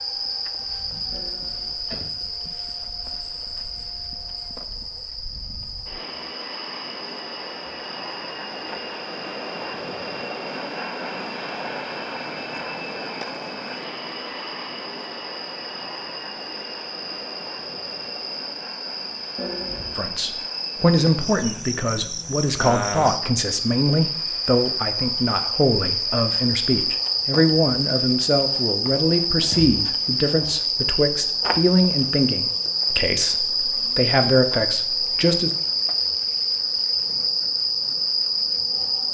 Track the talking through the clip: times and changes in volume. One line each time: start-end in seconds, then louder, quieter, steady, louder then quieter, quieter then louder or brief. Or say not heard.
19.9-35.5 steady.